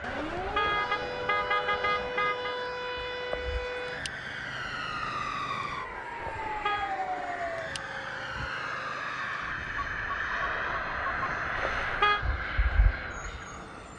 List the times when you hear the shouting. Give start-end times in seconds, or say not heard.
not heard.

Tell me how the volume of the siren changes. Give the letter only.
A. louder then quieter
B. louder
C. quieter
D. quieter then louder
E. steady
C.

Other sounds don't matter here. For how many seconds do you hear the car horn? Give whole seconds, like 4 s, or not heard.
4 s.